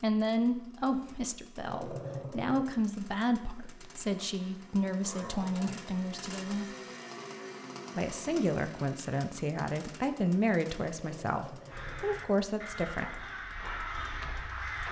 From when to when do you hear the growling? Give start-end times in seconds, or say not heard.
1.6-2.7, 5.0-6.0, 10.9-12.2.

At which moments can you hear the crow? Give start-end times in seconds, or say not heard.
11.7-14.8.